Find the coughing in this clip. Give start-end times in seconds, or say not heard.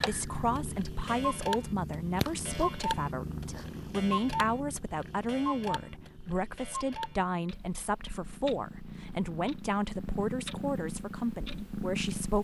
not heard.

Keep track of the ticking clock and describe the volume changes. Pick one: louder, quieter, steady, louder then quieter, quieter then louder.
quieter.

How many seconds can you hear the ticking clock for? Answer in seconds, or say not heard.
12 s.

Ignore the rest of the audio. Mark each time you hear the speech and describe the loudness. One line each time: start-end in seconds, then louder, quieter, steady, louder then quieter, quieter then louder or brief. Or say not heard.
0.0-12.3 steady.